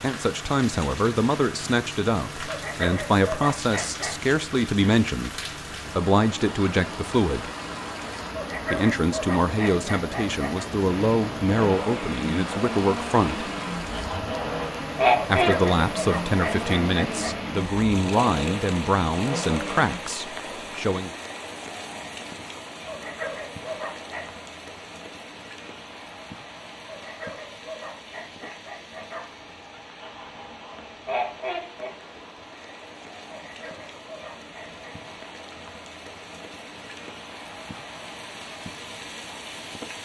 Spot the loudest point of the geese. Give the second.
15 s.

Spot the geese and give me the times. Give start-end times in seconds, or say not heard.
13.9-15.6, 30.0-31.9.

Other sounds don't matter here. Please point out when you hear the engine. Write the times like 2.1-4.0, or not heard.
10.8-20.0.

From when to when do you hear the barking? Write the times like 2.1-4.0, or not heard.
2.5-4.2, 8.3-10.7, 15.3-17.4, 22.9-24.2, 26.9-29.2, 33.3-35.0.